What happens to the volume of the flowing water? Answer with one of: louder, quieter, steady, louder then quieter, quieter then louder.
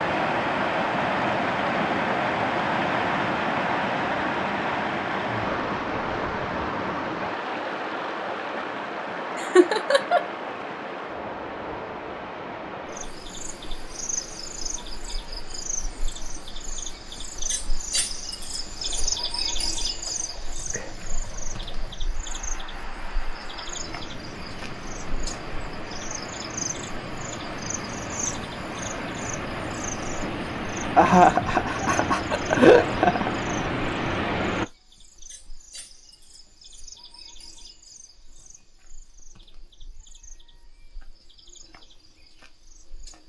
quieter then louder.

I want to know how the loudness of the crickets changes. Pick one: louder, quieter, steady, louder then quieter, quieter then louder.
quieter.